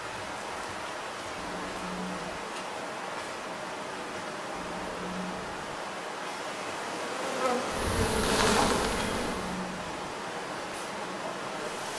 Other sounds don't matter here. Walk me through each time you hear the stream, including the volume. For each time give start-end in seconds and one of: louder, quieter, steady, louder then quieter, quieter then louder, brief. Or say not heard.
0.0-11.9 steady.